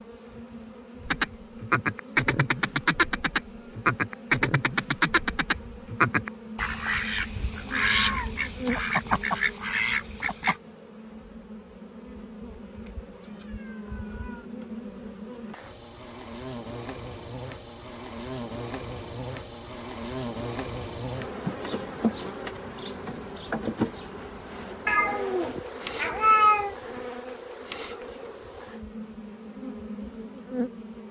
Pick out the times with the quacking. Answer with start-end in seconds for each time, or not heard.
1.1-10.6.